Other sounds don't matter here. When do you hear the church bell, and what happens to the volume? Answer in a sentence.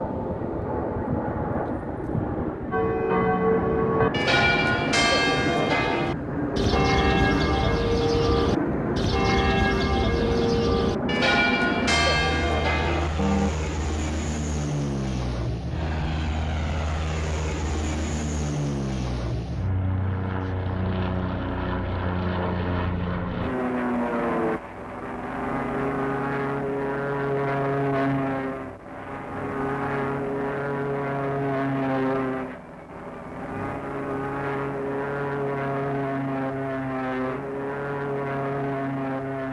You can hear the church bell from 2.7 to 13.5 s, at a steady volume.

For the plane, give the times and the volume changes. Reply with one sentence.
The plane can be heard from 0.0 to 39.4 s, at a steady volume.